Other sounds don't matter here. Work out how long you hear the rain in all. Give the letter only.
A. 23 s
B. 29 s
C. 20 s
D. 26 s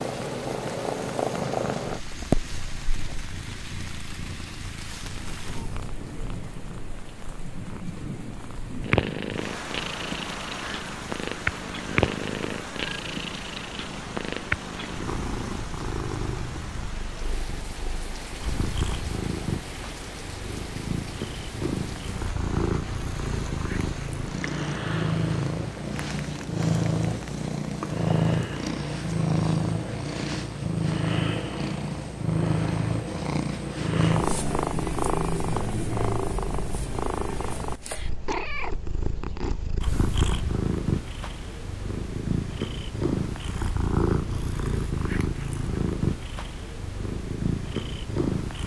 B.